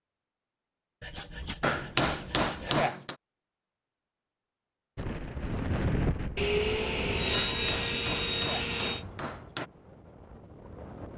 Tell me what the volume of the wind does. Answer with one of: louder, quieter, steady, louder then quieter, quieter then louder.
quieter.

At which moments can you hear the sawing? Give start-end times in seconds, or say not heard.
1.0-2.9, 6.3-9.1.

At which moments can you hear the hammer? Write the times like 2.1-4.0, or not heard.
1.6-3.1, 7.3-9.7.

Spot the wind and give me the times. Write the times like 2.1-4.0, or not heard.
5.0-11.1.